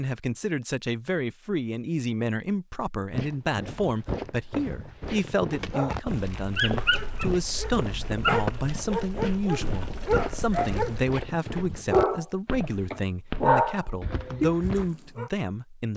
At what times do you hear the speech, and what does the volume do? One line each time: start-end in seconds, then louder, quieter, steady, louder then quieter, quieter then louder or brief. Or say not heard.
0.0-15.9 steady.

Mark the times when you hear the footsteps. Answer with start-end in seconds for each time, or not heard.
3.1-14.9.